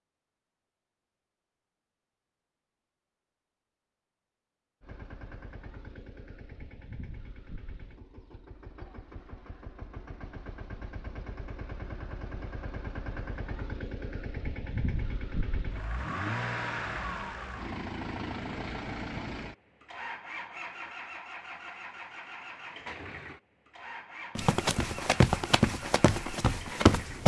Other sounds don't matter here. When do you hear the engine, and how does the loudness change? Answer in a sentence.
The engine can be heard from 4.8 to 27.2 s, getting louder then quieter.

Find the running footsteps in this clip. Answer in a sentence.
You can hear the running footsteps from 24.4 to 27.2 s.